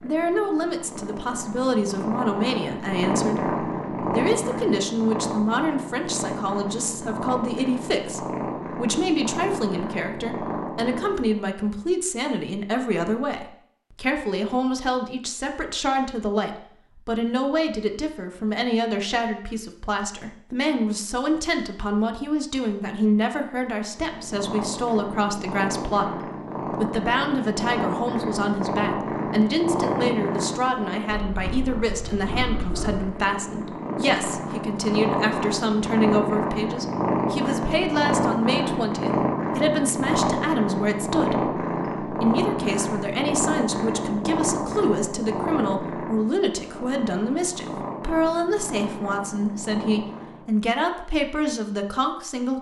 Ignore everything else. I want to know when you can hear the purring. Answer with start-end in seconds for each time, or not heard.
0.0-11.4, 23.9-50.5.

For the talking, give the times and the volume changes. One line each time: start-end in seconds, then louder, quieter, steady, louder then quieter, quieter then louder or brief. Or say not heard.
0.0-52.5 steady.